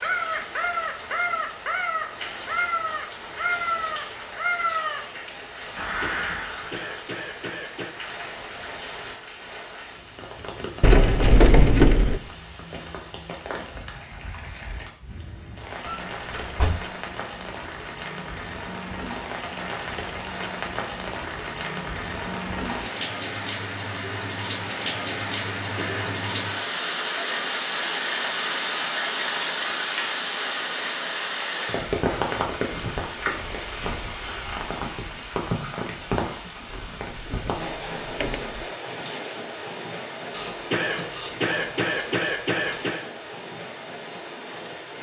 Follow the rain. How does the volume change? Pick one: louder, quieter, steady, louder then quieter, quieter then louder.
louder then quieter.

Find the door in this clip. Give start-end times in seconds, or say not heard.
10.8-12.2, 15.8-16.9, 36.6-38.6.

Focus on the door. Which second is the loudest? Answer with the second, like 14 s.
12 s.